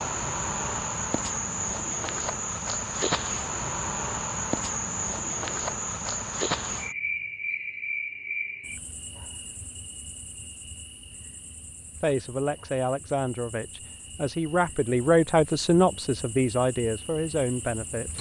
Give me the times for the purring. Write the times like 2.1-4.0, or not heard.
not heard.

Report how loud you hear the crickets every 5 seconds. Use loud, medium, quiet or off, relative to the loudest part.
loud, loud, quiet, quiet.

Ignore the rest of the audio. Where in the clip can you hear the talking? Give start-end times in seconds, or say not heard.
12.0-18.1.